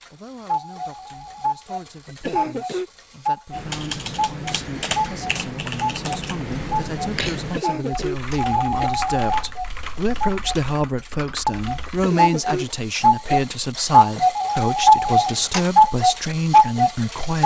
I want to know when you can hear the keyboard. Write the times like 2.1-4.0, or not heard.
3.5-12.2.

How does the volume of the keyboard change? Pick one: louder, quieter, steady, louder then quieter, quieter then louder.
quieter.